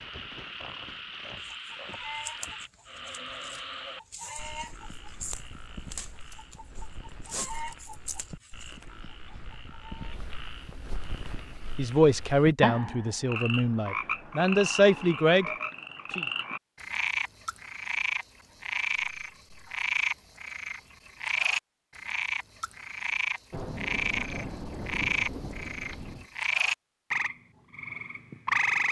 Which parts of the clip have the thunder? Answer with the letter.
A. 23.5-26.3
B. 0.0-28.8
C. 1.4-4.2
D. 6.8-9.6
A.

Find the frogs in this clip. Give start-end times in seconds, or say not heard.
0.0-28.8.